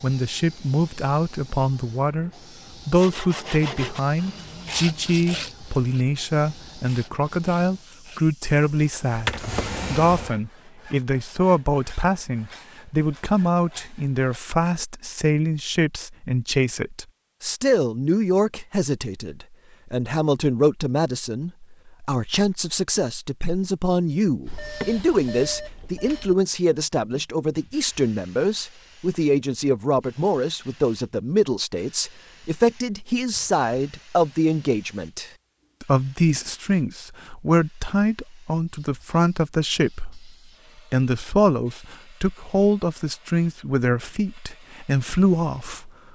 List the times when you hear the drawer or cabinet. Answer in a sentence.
The drawer or cabinet can be heard from 9.2 to 10.3 s.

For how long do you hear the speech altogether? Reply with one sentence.
You can hear the speech for 45 seconds altogether.